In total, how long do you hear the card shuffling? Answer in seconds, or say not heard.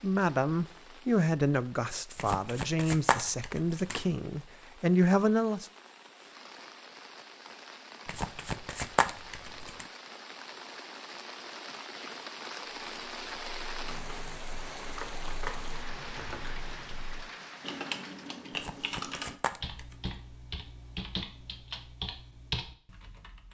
5 s.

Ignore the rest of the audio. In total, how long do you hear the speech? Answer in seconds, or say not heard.
6 s.